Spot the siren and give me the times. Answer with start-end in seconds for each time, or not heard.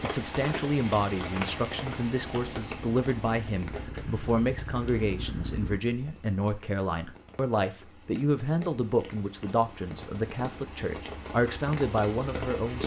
not heard.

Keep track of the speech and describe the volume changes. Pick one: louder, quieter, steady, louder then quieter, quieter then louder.
steady.